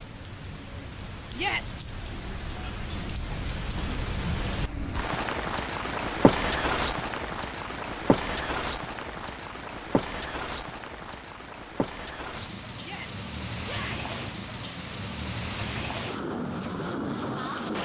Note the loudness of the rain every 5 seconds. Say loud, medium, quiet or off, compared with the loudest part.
medium, loud, medium, loud.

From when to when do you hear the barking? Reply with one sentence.
You can't hear the barking here.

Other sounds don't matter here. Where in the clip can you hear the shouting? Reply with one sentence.
You can hear the shouting from 1.3 to 1.8 s and from 12.8 to 14.1 s.